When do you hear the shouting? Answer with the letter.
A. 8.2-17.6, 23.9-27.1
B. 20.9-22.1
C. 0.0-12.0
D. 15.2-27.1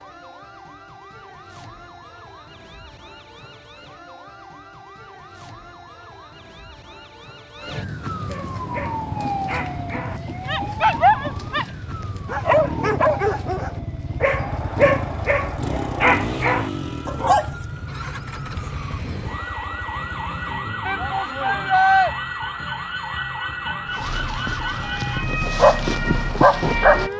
B.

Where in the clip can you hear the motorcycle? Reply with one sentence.
You can hear the motorcycle from 8.7 to 20.7 s.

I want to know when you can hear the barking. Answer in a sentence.
The barking can be heard from 8.2 to 17.6 s and from 23.9 to 27.1 s.